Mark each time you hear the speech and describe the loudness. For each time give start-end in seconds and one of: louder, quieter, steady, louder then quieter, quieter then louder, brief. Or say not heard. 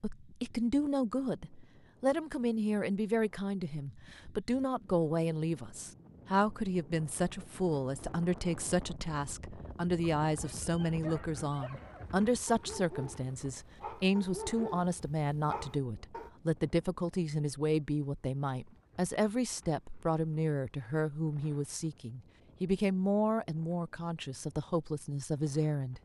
0.0-26.0 steady.